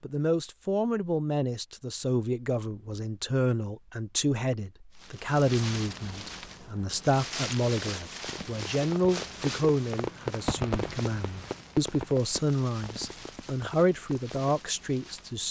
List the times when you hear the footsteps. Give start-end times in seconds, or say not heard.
not heard.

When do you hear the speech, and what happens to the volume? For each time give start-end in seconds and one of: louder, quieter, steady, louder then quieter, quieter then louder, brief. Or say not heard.
0.0-15.4 steady.